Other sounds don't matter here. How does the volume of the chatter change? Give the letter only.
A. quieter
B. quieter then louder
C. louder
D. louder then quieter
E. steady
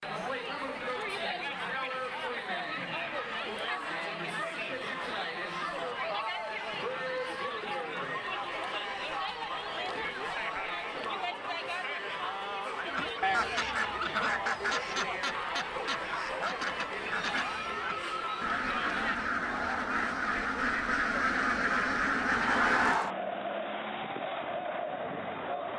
E.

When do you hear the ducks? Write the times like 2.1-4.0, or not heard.
12.9-23.0.